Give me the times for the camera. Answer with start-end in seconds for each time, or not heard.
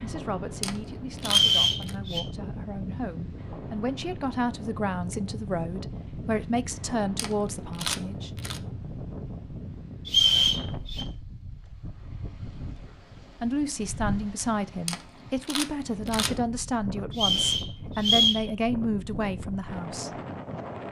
0.6-1.9, 7.2-8.6, 14.8-16.4.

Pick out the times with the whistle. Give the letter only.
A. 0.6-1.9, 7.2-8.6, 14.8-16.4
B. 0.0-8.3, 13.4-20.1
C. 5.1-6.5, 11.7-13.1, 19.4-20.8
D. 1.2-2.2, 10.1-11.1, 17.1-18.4
D.